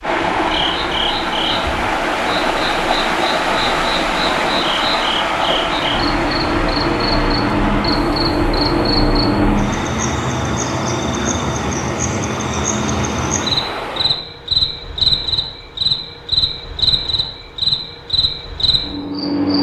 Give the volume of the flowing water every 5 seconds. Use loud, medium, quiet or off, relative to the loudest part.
loud, loud, medium, off.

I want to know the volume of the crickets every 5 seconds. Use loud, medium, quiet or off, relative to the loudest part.
medium, loud, loud, loud.